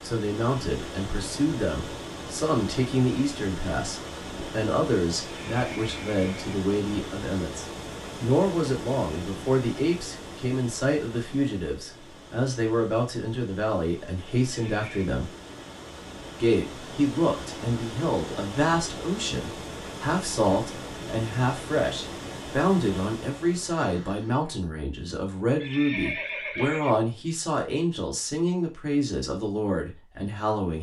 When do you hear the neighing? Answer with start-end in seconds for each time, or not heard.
5.3-6.5, 14.5-15.1, 25.6-26.9.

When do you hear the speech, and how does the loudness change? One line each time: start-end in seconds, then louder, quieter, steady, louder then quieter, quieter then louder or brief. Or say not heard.
0.0-15.3 steady
16.4-30.7 steady.